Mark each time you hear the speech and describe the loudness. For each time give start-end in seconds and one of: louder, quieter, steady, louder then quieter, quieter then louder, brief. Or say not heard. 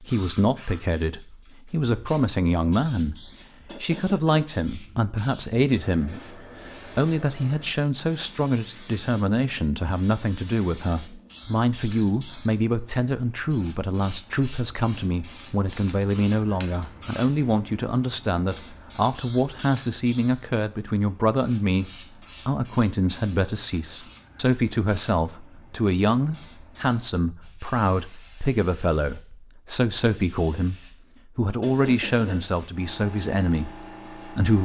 0.0-34.6 steady.